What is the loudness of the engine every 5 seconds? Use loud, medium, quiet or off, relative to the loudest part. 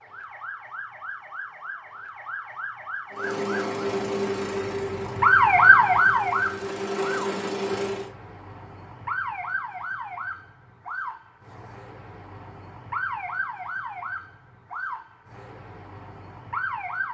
loud, loud, off, off.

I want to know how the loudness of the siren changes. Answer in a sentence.
The volume of the siren goes up, then down.